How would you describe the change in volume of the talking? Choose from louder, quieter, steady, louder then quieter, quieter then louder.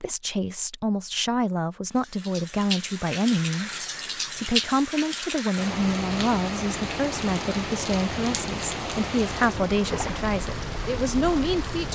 steady.